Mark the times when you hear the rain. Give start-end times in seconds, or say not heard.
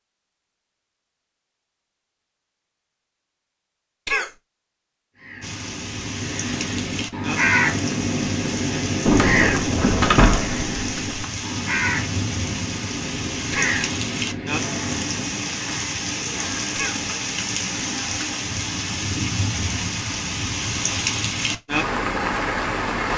5.4-23.1.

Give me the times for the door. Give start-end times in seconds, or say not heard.
9.1-11.2.